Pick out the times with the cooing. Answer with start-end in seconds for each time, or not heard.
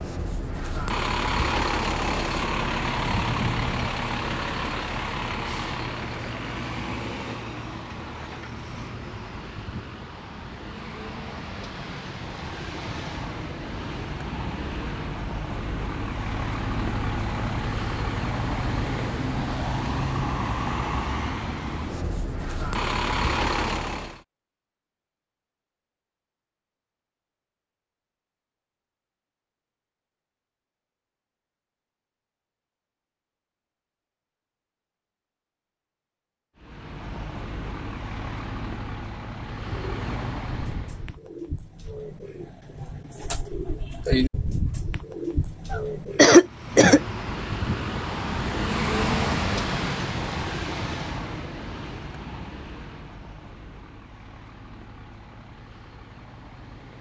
39.6-46.3.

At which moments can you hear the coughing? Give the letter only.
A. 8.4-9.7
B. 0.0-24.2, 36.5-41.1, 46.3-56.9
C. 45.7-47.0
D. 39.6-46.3
C.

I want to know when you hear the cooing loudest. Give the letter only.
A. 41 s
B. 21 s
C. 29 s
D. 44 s
D.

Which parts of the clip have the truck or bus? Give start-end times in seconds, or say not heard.
0.0-24.2, 36.5-41.1, 46.3-56.9.